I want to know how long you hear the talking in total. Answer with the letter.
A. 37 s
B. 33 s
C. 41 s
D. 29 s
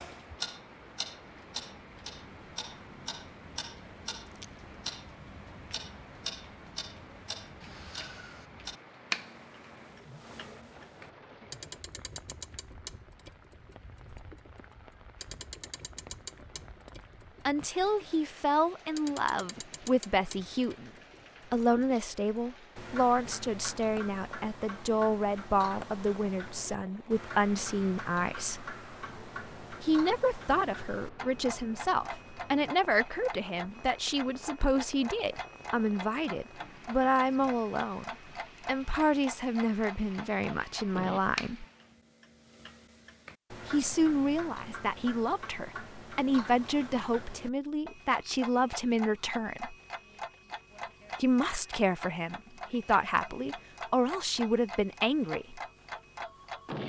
B.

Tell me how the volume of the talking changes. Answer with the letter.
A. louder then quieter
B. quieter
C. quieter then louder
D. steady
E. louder
D.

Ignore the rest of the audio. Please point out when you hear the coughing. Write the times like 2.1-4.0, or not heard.
not heard.